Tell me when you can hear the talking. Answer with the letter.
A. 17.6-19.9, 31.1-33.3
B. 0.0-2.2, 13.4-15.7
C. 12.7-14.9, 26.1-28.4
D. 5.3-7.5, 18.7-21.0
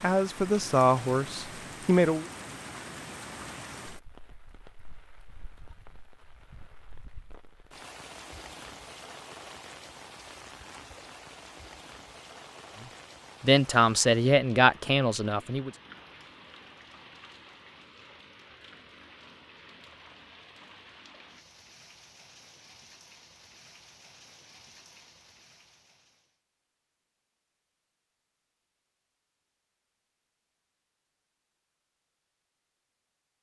B.